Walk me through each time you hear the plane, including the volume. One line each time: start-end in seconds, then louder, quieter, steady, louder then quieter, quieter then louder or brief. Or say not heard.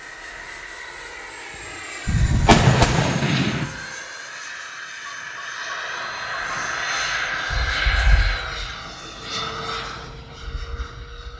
0.0-11.3 louder then quieter.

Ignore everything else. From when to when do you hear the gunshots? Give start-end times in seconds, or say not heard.
2.0-3.6.